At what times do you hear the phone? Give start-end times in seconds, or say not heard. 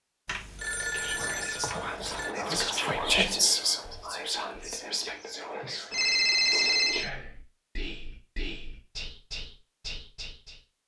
0.2-2.4, 5.9-7.1.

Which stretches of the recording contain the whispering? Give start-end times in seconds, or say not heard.
0.8-10.6.